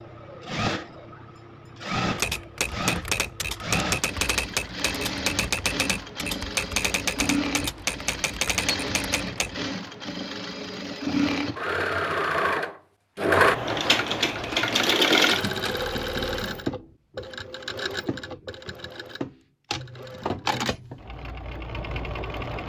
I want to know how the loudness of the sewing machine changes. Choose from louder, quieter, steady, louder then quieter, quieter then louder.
louder then quieter.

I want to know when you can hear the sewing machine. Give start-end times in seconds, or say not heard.
0.0-22.6.